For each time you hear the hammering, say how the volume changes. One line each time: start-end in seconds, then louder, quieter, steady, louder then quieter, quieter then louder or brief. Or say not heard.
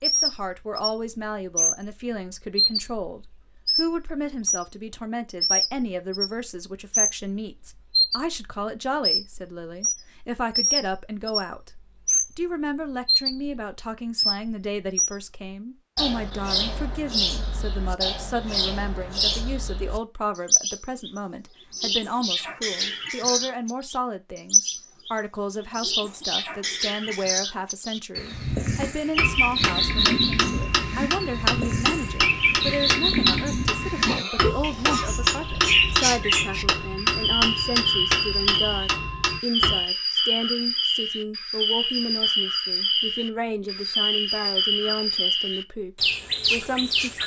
29.1-39.8 steady.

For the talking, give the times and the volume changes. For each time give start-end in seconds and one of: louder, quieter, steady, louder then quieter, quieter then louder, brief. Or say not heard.
0.0-11.7 steady
12.3-47.2 steady.